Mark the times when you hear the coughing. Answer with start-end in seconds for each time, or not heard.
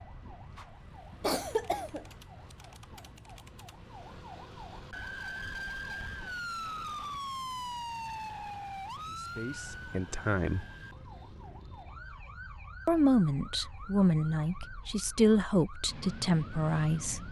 1.2-2.2.